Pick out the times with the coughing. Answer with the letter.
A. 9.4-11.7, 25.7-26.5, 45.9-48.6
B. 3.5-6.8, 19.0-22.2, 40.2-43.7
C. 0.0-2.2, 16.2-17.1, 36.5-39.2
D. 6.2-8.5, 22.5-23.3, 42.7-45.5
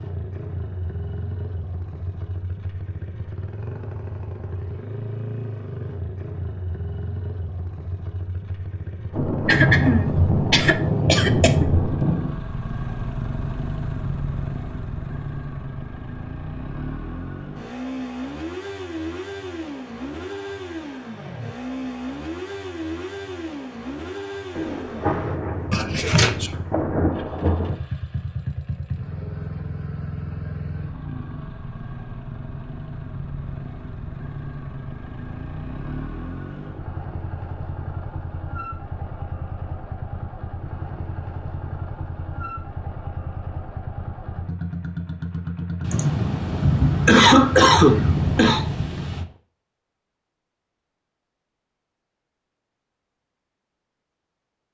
A.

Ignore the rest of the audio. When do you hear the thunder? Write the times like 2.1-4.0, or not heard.
9.1-12.3, 24.6-27.8, 45.8-49.2.